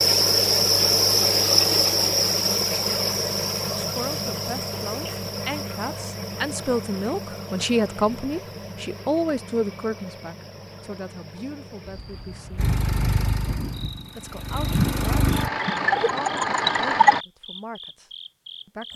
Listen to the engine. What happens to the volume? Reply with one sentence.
The volume of the engine goes down, then up.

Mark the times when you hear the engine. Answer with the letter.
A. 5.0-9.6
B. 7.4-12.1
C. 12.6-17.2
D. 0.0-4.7
C.